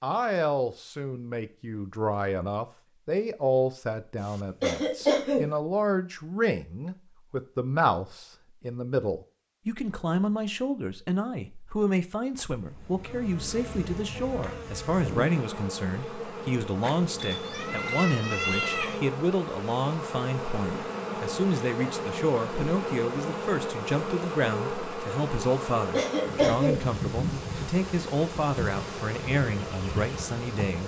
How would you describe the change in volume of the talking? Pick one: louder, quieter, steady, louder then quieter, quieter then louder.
steady.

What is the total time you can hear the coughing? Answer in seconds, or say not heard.
2 s.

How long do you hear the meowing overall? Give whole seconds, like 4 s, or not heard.
2 s.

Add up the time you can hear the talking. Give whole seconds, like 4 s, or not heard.
31 s.